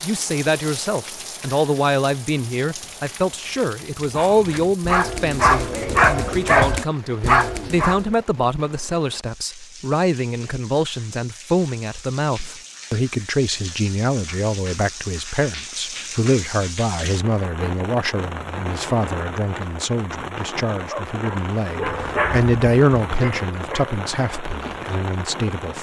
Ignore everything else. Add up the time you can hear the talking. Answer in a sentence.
The talking can be heard for 26 seconds in total.